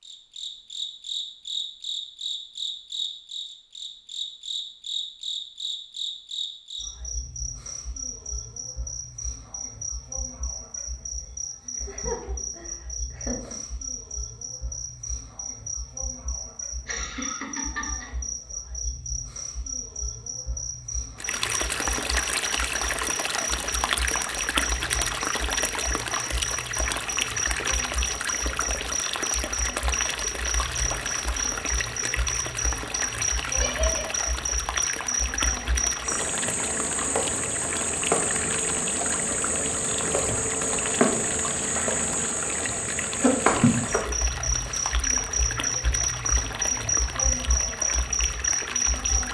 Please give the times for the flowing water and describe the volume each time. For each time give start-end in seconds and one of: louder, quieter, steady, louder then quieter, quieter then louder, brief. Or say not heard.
21.1-49.2 quieter.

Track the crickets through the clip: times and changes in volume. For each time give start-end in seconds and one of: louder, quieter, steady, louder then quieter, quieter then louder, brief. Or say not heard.
0.0-49.2 louder.